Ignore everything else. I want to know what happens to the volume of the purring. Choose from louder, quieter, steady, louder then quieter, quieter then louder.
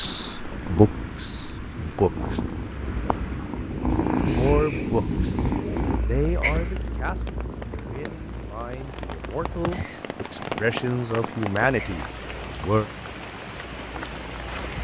louder then quieter.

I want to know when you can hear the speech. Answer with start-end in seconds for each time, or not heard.
0.0-2.4, 4.2-12.8.